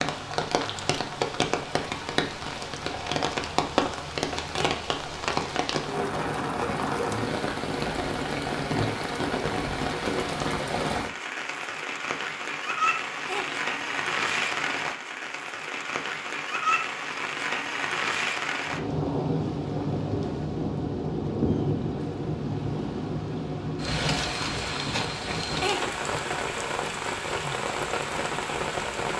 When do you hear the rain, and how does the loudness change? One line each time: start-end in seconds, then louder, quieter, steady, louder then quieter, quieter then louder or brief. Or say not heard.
0.0-29.1 steady.